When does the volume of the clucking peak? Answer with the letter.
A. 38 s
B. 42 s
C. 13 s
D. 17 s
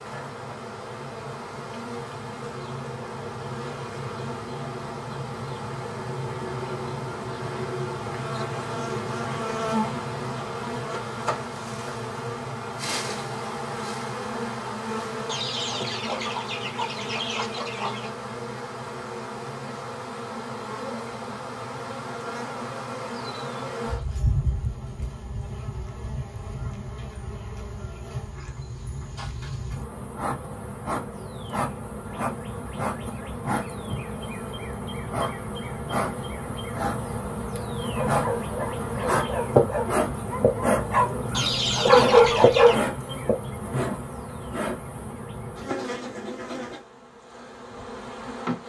B.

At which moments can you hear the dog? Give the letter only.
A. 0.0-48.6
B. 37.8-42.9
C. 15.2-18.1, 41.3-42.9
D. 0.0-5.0
B.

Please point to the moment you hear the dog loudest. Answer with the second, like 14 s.
42 s.